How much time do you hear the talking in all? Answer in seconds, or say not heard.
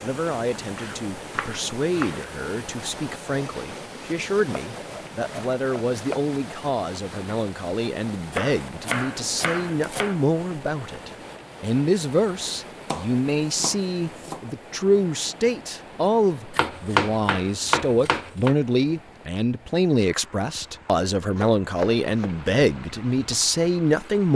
24 s.